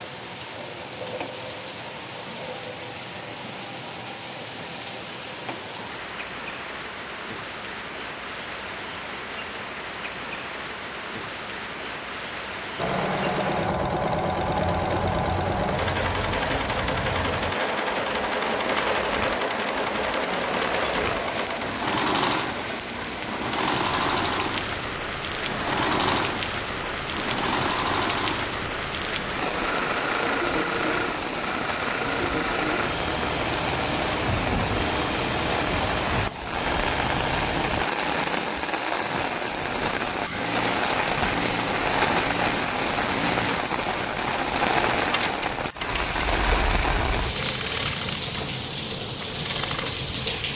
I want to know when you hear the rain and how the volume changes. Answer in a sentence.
You can hear the rain from 0.0 to 50.5 s, getting louder.